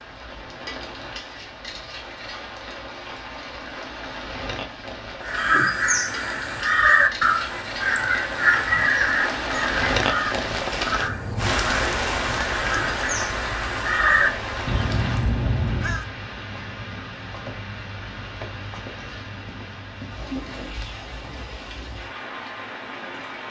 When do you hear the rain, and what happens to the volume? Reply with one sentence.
The rain can be heard from 0.0 to 23.4 s, getting louder then quieter.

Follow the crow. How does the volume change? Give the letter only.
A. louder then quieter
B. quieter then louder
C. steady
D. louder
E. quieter
B.